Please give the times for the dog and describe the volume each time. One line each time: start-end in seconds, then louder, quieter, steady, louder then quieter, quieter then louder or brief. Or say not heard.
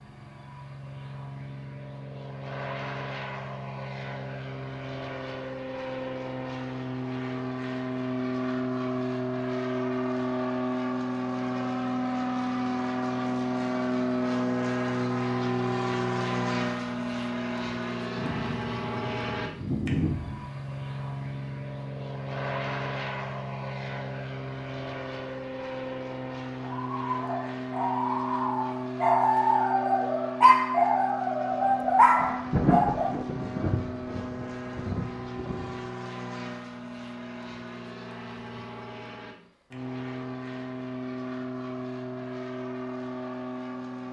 26.6-33.2 louder.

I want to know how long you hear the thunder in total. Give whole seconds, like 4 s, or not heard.
6 s.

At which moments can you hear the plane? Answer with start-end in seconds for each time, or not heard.
0.0-44.0.